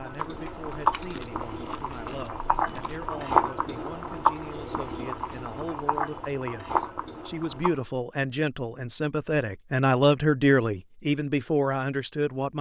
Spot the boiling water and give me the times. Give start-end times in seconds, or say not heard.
0.0-7.8.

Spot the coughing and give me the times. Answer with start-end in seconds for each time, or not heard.
not heard.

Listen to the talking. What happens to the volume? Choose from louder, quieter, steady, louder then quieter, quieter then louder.
louder.